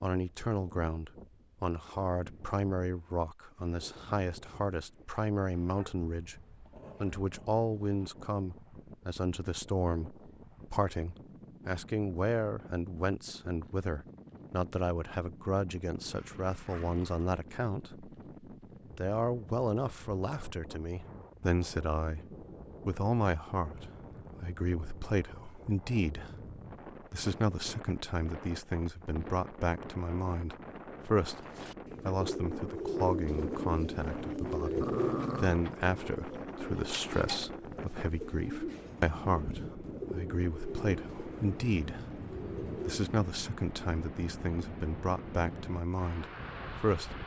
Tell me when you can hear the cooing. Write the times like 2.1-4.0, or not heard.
31.4-43.1.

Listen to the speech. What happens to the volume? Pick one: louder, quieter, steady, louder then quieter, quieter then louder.
steady.